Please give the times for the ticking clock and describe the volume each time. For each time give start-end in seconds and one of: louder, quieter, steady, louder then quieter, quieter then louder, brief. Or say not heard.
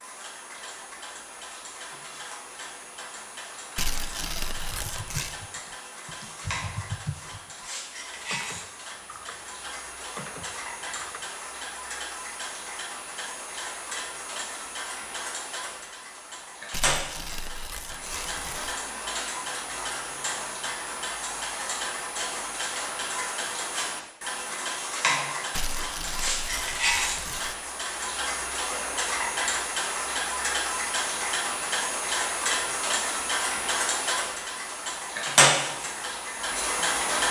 0.0-37.2 louder.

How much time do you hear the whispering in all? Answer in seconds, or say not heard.
not heard.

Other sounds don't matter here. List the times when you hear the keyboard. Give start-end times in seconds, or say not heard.
4.5-11.3.